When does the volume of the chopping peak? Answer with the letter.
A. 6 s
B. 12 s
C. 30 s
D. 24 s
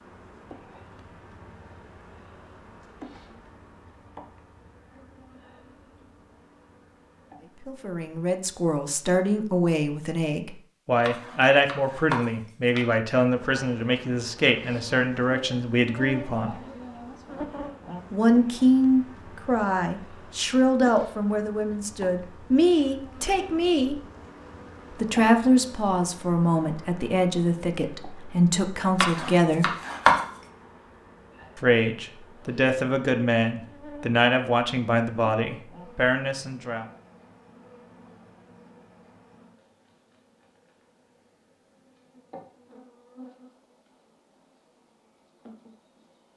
C.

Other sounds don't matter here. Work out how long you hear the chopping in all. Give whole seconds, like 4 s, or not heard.
3 s.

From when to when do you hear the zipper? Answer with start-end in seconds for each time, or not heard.
not heard.